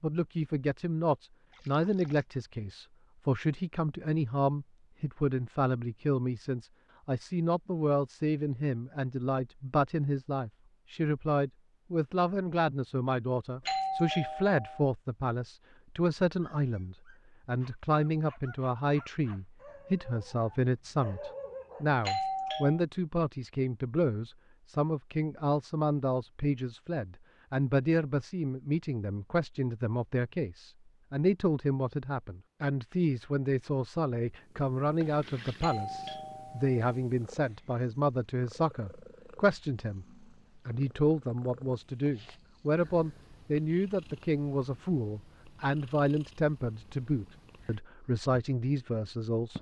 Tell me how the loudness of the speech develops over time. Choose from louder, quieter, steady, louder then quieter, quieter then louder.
steady.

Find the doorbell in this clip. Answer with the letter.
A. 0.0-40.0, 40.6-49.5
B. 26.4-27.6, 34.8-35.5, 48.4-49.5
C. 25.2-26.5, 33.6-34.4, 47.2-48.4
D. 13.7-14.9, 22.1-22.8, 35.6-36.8
D.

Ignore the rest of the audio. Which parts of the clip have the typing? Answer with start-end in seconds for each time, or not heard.
not heard.